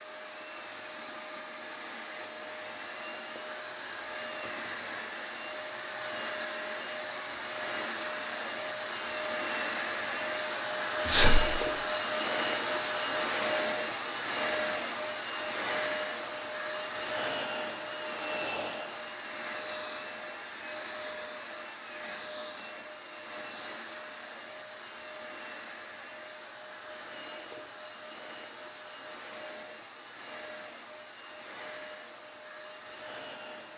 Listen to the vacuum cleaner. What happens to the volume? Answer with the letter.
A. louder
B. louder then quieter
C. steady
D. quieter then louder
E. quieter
B.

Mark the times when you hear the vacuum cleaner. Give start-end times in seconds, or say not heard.
0.0-33.7.